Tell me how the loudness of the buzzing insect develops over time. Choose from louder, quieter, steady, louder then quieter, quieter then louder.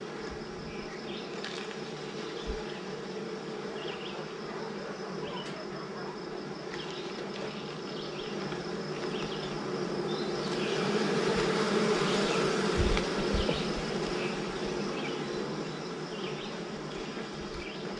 louder then quieter.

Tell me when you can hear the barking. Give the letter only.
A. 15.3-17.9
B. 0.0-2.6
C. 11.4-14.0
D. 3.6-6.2
D.